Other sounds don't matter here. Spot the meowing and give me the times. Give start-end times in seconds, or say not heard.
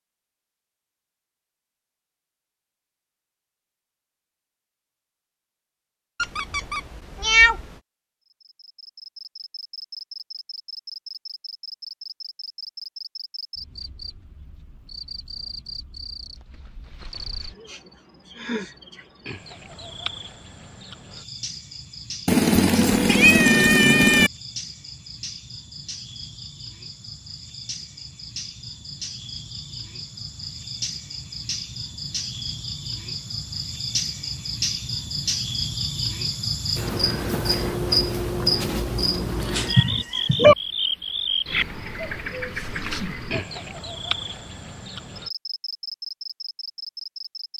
6.2-7.6, 22.2-24.3, 39.5-40.5.